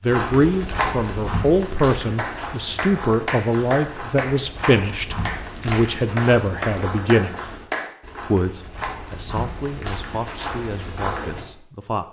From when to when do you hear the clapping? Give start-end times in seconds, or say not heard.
1.9-8.0.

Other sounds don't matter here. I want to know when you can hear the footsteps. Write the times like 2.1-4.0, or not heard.
0.1-11.4.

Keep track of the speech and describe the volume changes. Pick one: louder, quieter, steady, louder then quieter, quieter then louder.
quieter.